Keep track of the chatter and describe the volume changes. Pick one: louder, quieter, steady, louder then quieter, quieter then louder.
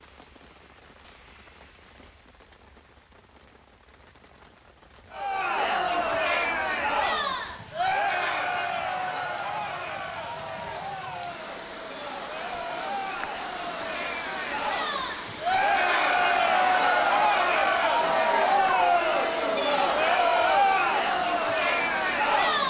quieter then louder.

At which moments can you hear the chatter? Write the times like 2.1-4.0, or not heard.
5.1-22.6.